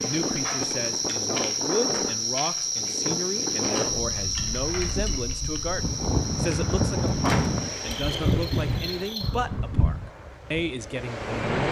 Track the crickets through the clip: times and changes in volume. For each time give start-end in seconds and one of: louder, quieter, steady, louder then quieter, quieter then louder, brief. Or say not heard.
0.0-9.4 quieter.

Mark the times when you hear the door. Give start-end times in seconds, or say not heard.
7.2-7.7.